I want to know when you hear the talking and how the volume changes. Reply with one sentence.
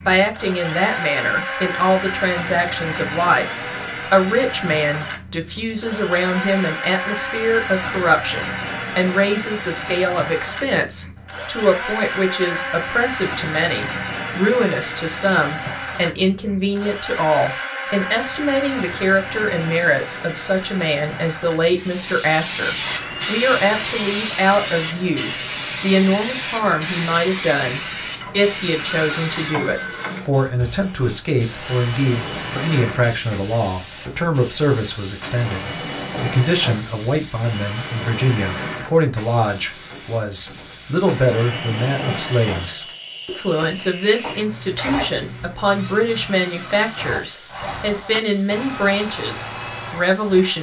You can hear the talking from 0.0 to 50.5 s, at a steady volume.